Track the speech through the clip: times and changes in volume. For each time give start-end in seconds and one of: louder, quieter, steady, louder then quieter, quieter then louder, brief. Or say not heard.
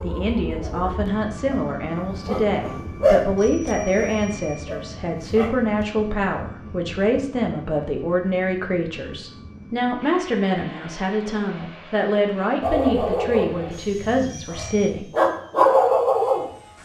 0.0-15.1 steady.